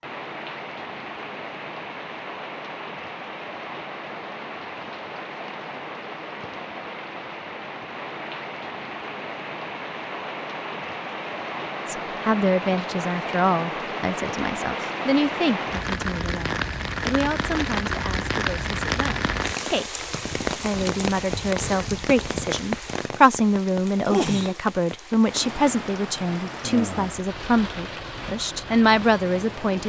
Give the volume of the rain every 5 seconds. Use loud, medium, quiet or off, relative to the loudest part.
medium, medium, loud, loud, loud, medium.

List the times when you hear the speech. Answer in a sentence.
The speech can be heard from 11.8 to 29.8 s.